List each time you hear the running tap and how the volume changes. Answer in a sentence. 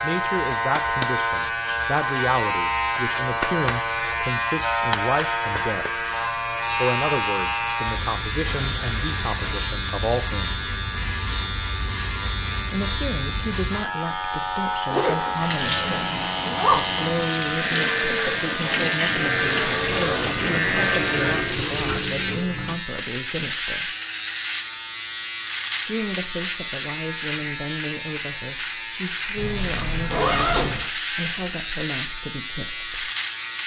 You can hear the running tap from 15.3 to 22.8 s, at a steady volume.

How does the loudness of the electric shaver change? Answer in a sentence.
The loudness of the electric shaver stays about the same.